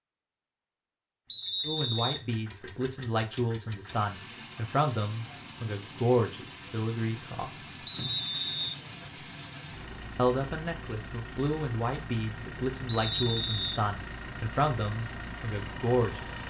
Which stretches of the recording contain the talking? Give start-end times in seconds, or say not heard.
1.6-7.8, 10.2-16.4.